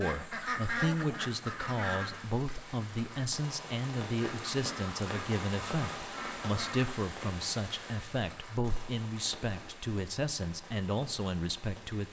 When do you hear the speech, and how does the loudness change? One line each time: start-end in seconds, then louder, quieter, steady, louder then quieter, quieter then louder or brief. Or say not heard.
0.0-12.0 steady.